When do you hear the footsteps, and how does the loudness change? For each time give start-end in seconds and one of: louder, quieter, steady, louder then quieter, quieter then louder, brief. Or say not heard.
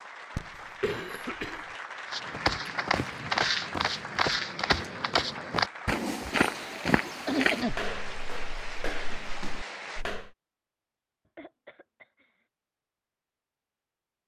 2.1-10.3 quieter.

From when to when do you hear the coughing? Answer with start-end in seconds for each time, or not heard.
0.3-1.7, 7.2-7.8, 11.3-12.3.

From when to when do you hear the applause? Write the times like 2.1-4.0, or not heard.
0.0-10.1.